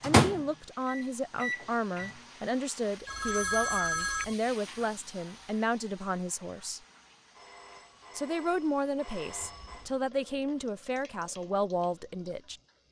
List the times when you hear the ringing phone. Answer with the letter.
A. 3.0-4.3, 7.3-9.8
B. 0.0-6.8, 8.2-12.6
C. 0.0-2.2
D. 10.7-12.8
A.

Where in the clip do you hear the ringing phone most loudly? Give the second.
4 s.